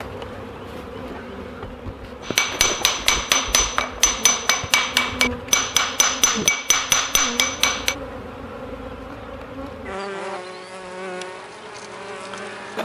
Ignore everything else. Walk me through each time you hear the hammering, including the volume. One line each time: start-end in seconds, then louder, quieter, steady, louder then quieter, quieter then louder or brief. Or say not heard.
2.2-8.0 steady.